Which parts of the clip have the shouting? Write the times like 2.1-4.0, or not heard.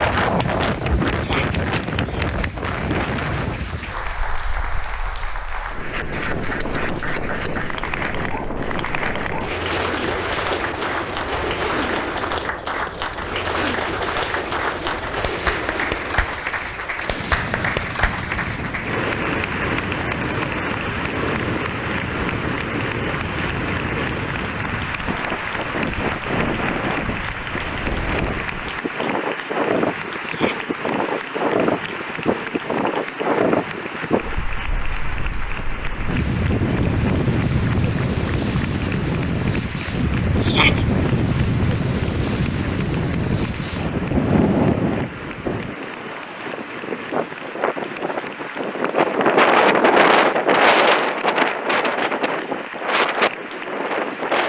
1.2-1.6, 30.2-30.7, 40.4-40.9.